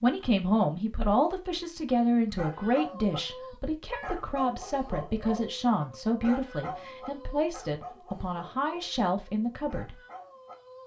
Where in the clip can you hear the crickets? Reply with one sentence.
The crickets can't be heard in this clip.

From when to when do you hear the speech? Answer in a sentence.
The speech can be heard from 0.0 to 9.9 s.